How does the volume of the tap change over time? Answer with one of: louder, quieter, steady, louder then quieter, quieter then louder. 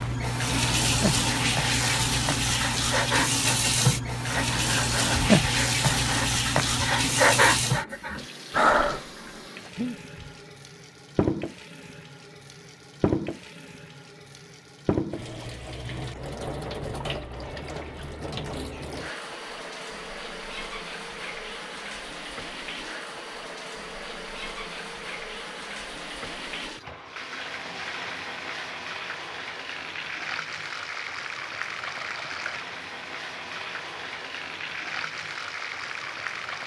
quieter.